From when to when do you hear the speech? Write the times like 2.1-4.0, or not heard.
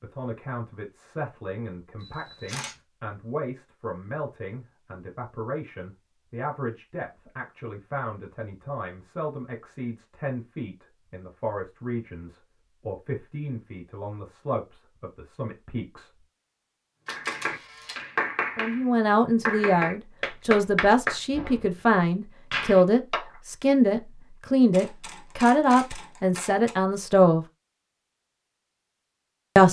0.0-16.2, 18.6-27.4.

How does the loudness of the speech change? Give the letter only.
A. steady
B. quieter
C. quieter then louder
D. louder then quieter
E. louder
E.